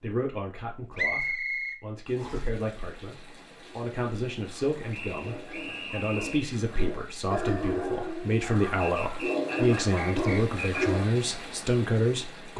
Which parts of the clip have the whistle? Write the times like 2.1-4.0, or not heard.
0.9-2.5, 4.9-6.5, 8.8-10.6.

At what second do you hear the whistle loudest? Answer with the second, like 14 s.
1 s.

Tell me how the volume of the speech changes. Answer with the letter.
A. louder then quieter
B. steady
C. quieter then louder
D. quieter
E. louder
E.